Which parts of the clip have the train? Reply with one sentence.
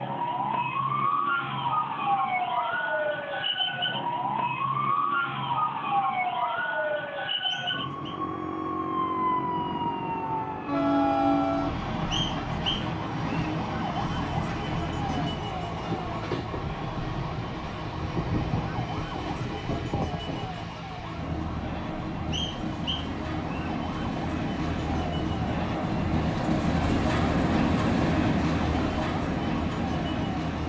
You can hear the train from 9.8 to 30.6 s.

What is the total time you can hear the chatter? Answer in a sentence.
You can't hear the chatter here.